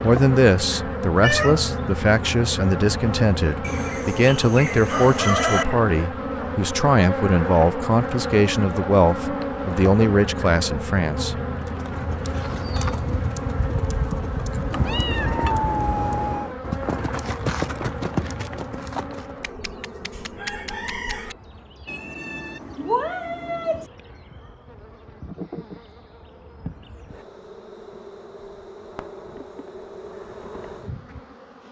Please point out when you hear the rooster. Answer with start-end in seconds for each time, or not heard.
3.6-5.7, 19.4-21.4.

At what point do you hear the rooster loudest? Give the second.
5 s.